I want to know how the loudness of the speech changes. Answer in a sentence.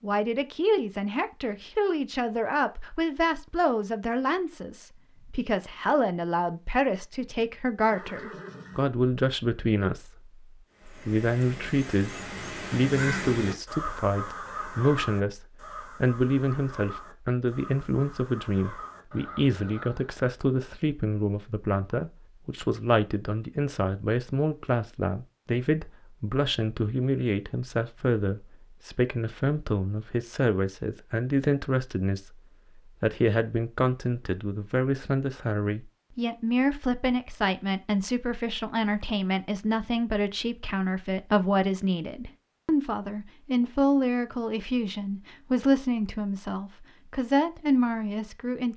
The loudness of the speech stays about the same.